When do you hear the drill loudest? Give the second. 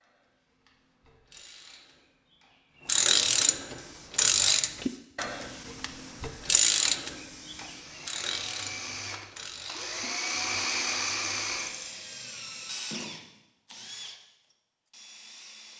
11 s.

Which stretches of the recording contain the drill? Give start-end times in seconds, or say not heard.
3.8-15.7.